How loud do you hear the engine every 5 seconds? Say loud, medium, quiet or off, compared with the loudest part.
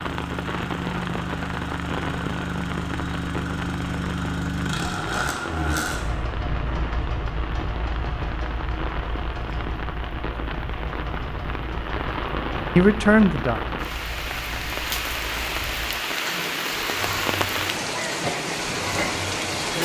loud, loud, medium, medium.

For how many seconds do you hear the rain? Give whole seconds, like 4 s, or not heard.
20 s.